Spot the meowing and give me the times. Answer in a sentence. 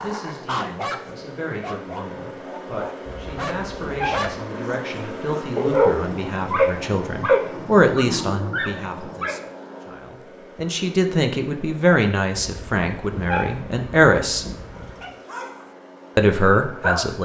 You can hear the meowing from 3.0 to 4.4 s and from 12.3 to 15.1 s.